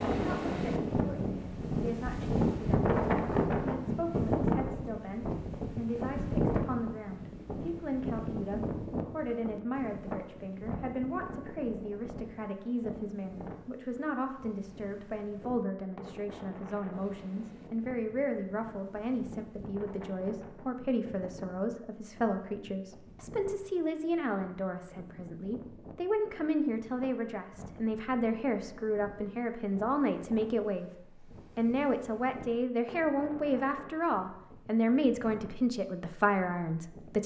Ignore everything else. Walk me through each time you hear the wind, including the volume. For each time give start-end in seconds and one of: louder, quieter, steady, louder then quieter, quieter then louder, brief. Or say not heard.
0.0-37.2 quieter.